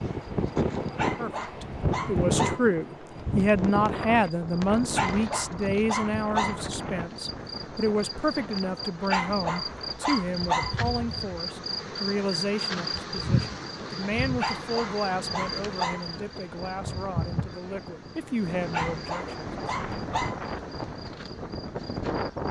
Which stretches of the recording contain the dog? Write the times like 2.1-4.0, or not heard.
0.9-2.6, 5.0-6.6, 9.1-10.9, 14.4-16.4, 18.7-20.5.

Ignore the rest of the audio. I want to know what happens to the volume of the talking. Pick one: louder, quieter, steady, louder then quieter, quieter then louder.
quieter.